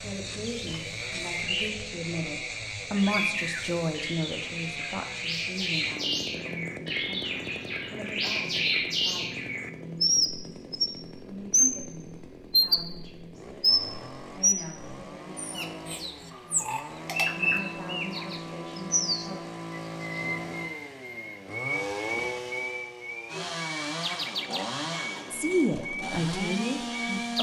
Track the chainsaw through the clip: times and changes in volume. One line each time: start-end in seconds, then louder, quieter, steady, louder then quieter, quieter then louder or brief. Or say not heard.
0.0-27.3 quieter then louder.